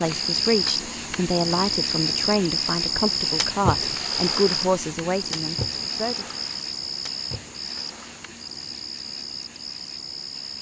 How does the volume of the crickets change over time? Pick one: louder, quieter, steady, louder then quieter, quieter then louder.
quieter.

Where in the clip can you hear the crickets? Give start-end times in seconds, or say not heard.
0.0-10.5.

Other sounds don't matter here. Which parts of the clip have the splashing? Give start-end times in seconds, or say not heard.
3.2-8.3.